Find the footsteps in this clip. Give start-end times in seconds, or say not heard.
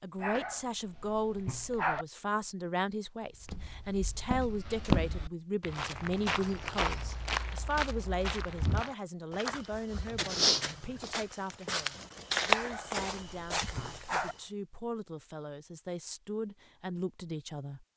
3.4-14.3.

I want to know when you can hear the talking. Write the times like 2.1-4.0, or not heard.
0.0-17.9.